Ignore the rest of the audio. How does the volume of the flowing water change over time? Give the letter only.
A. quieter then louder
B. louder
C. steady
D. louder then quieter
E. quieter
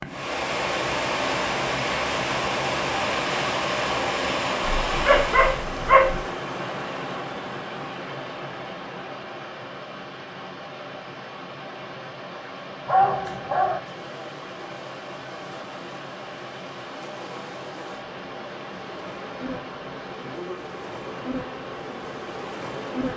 E.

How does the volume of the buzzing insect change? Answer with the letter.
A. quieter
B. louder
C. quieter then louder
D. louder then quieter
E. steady
B.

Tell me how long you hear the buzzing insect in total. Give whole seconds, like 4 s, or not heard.
9 s.